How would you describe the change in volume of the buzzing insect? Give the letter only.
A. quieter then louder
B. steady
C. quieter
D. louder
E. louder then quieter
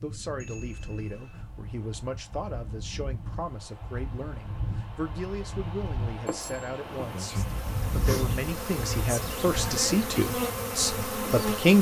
D.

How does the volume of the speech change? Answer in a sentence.
The loudness of the speech goes up.